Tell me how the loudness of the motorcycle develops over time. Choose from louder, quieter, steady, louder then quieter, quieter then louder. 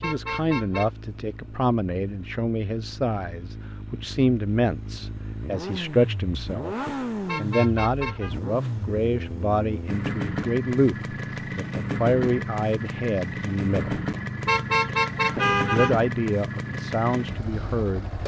louder.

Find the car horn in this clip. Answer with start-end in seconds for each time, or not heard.
0.0-0.9, 7.2-8.3, 14.4-15.9.